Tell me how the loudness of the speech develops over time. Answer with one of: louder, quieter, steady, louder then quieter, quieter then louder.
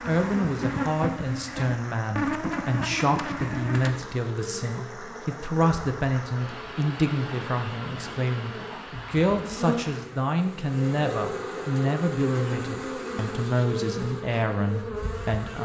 steady.